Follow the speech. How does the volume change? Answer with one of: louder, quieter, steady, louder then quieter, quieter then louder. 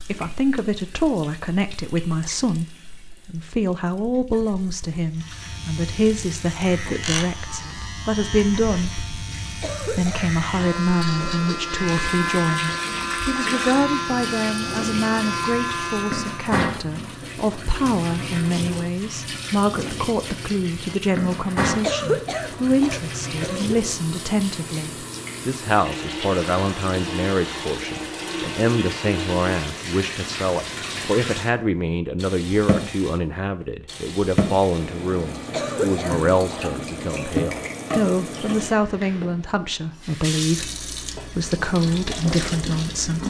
steady.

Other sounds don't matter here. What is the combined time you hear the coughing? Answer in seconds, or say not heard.
6 s.